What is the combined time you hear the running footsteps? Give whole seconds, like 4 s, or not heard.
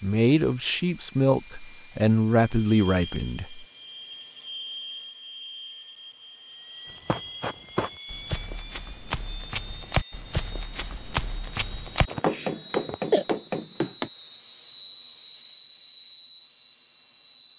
7 s.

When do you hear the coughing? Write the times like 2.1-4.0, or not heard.
12.1-13.2.